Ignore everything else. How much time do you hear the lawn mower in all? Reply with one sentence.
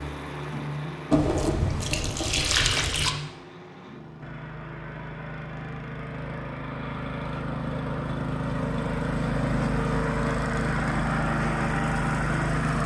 You can hear the lawn mower for 13 seconds altogether.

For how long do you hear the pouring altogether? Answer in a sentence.
The pouring can be heard for 2 seconds in total.